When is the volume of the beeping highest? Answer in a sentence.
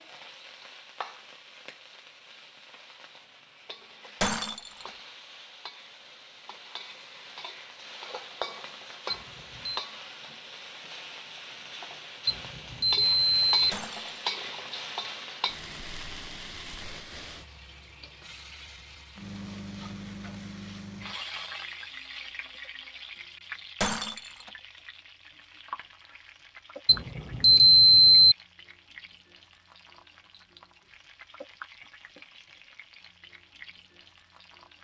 The loudest moment of the beeping is at 28 seconds.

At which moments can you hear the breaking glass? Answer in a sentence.
The breaking glass can be heard from 4.2 to 4.9 s, from 13.7 to 14.2 s and from 23.8 to 24.5 s.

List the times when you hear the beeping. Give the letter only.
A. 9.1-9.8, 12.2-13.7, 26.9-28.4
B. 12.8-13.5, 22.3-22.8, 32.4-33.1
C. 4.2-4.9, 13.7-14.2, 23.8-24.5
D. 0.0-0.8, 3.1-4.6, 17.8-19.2
A.